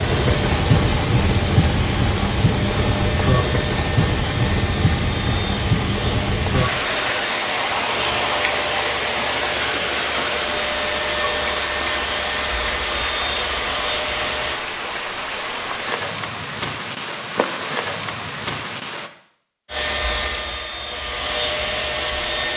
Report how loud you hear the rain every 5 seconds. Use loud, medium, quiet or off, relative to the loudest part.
loud, loud, medium, medium, off.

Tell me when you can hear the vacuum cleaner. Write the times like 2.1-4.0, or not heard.
0.0-14.6, 19.6-22.5.